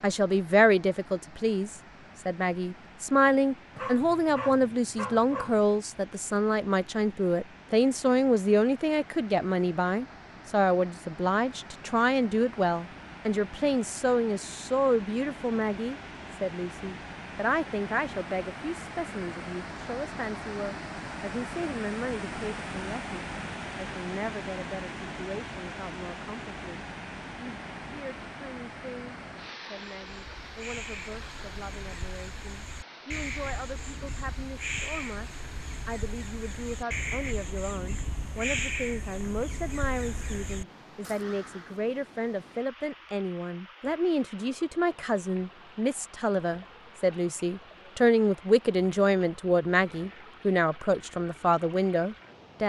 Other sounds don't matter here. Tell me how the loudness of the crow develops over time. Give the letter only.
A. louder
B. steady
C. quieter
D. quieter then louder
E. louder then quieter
E.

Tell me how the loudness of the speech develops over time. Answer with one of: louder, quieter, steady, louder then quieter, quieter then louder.
quieter then louder.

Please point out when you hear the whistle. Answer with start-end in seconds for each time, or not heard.
not heard.